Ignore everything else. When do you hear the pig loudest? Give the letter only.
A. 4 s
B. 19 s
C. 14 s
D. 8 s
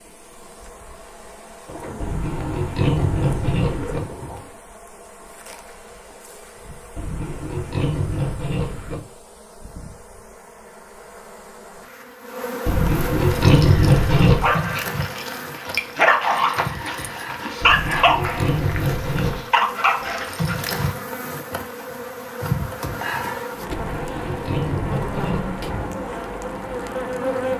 C.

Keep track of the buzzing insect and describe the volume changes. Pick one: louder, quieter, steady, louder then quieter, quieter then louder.
louder.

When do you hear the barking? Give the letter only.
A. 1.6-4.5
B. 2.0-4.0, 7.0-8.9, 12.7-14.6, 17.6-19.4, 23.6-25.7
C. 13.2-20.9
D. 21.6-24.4
C.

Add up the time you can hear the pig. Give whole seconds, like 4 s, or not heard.
10 s.